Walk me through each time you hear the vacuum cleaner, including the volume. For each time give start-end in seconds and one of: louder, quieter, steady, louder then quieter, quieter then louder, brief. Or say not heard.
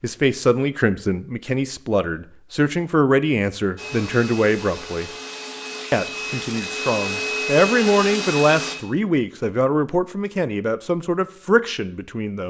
3.8-8.8 louder.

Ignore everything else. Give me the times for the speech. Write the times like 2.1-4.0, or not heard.
0.0-5.1, 5.9-12.4.